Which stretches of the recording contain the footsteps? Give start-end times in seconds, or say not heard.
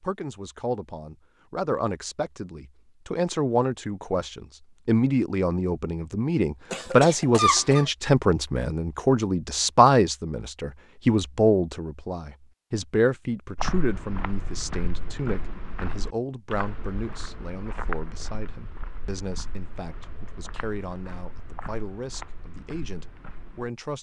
13.6-23.7.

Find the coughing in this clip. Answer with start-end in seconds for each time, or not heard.
6.7-7.9.